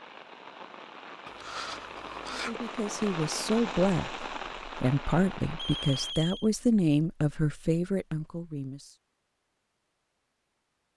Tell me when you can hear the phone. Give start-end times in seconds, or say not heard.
1.2-2.6, 5.5-6.5.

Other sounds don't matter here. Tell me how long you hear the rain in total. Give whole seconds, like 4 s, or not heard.
6 s.